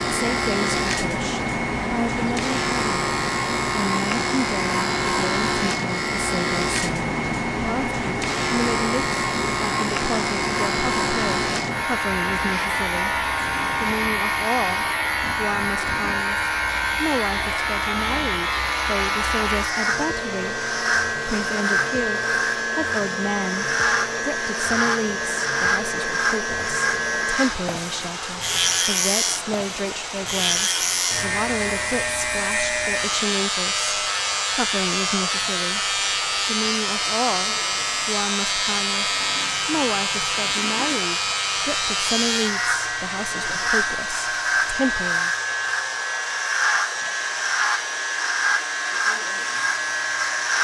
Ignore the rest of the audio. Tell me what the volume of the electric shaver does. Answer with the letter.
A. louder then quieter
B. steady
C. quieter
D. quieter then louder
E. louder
B.